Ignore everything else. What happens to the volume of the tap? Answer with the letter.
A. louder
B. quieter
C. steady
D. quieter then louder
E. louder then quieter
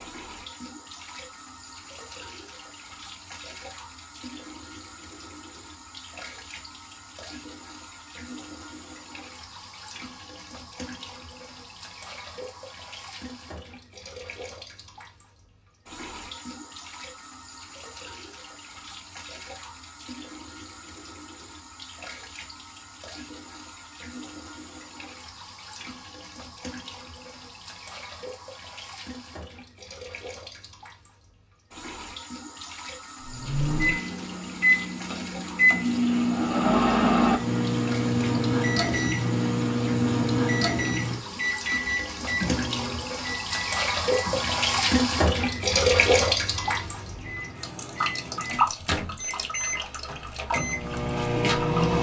A.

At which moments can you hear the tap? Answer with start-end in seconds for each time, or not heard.
0.0-51.9.